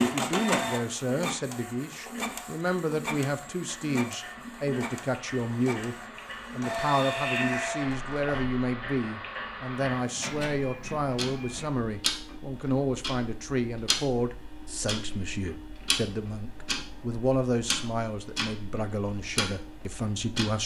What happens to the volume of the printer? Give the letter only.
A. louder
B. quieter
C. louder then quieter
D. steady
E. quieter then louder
B.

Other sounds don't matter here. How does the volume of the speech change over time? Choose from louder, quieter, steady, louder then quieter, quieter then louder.
steady.